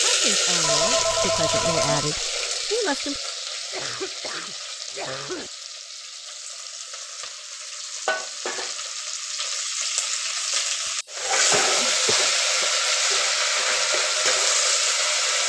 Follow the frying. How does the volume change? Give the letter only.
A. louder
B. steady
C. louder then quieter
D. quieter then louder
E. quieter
D.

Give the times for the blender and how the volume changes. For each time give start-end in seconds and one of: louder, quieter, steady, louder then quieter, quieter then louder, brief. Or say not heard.
not heard.